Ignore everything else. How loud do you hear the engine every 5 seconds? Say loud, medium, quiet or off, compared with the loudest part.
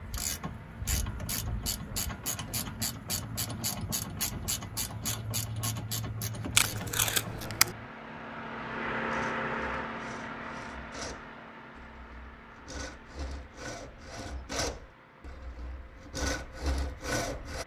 quiet, loud, medium, quiet.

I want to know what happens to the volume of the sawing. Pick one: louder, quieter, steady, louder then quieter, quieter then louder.
louder.